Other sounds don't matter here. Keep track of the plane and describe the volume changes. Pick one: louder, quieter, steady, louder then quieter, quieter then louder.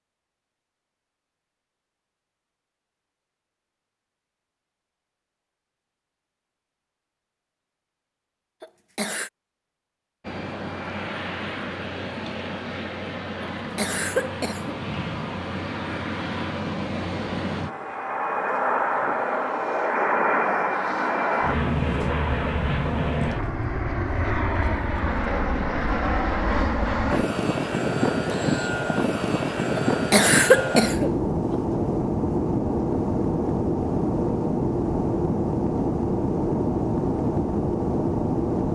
louder.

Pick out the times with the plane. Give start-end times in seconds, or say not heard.
10.2-38.6.